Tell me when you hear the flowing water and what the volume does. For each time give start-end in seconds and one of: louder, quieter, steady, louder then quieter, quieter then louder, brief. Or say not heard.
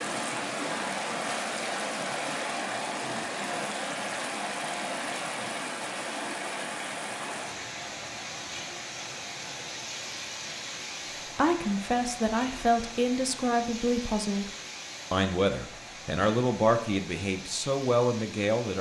0.0-18.7 quieter.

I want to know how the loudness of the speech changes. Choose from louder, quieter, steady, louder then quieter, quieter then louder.
steady.